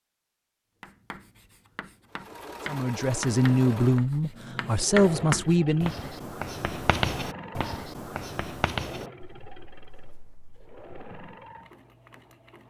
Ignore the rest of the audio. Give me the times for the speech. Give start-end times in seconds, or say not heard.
2.6-6.1.